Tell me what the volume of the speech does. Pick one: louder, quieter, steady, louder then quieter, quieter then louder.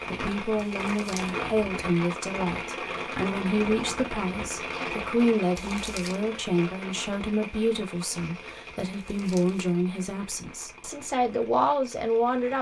steady.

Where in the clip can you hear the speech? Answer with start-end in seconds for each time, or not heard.
0.1-12.5.